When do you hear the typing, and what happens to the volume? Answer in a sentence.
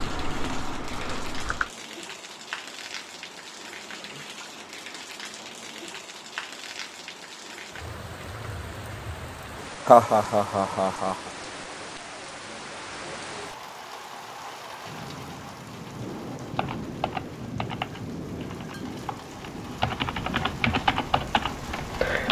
The typing can be heard briefly from 0.0 to 1.7 s; and from 16.6 to 22.2 s, getting quieter then louder.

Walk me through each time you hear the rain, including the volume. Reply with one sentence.
You can hear the rain from 0.0 to 22.2 s, at a steady volume.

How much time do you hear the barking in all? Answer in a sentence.
You can't hear the barking here.